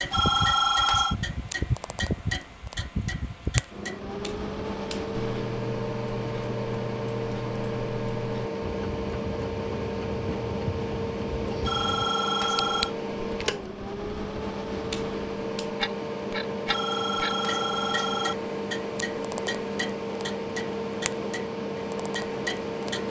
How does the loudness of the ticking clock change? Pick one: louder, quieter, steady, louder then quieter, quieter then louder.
steady.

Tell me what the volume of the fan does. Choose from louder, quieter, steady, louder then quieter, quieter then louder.
steady.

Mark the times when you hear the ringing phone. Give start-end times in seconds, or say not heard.
0.1-1.1, 11.6-12.9, 16.6-18.4.